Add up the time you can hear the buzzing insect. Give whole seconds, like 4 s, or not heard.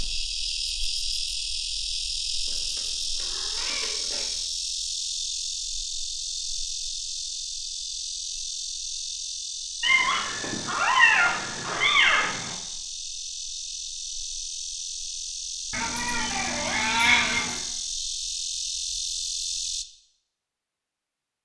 20 s.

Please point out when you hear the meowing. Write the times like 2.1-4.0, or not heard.
2.5-4.3, 9.8-12.6, 15.7-17.6.